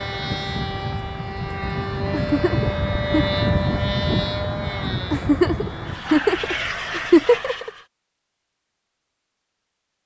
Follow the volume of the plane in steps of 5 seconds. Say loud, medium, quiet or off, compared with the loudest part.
loud, medium.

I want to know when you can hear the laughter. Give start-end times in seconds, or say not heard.
2.1-3.2, 5.1-7.7.